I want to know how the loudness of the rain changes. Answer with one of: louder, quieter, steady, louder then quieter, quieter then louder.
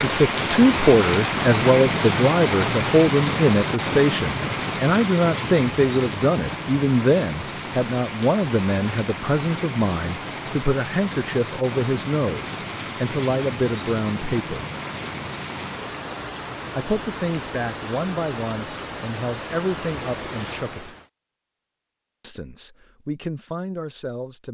quieter.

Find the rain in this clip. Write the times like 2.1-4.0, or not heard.
0.0-21.1.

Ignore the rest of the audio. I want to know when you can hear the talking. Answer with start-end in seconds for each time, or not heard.
0.0-14.7, 16.7-20.9, 22.2-24.4.